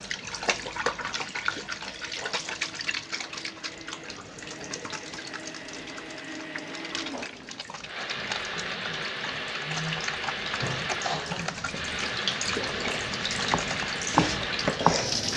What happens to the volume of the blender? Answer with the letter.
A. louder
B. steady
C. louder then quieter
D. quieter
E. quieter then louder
A.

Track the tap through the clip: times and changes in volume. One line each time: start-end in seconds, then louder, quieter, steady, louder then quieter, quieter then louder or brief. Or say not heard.
0.0-15.3 quieter then louder.